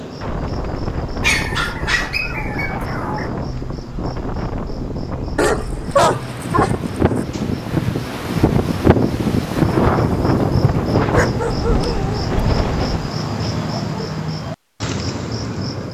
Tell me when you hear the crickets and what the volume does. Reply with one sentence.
You can hear the crickets from 0.0 to 15.8 s, getting louder.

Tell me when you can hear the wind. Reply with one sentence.
You can hear the wind from 0.2 to 13.1 s.